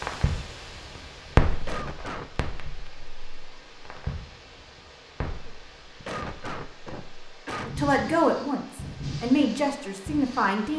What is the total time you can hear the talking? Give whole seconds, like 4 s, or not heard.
3 s.